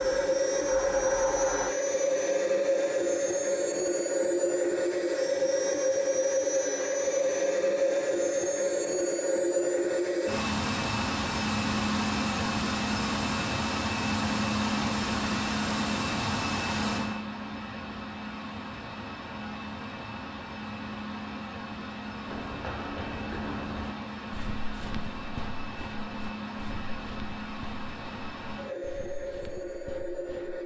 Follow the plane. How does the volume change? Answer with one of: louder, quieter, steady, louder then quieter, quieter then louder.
quieter.